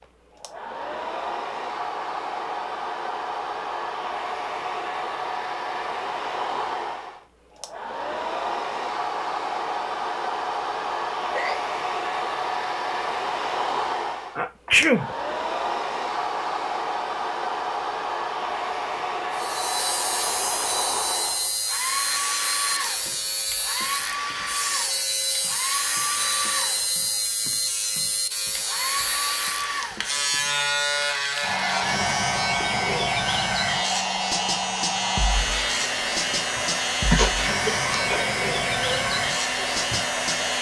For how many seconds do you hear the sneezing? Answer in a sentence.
You can hear the sneezing for 3 seconds altogether.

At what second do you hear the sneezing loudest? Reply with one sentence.
The loudest moment of the sneezing is at 15 seconds.